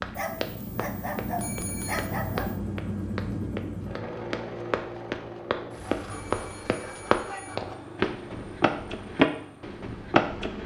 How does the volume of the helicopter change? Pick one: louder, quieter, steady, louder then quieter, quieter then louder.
quieter.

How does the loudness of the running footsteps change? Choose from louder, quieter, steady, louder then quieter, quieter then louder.
louder.